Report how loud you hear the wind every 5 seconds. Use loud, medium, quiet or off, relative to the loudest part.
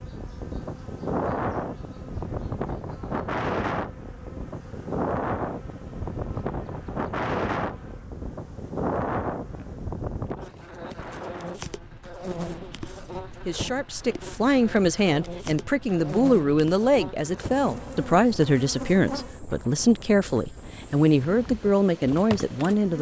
loud, loud, medium, quiet, quiet.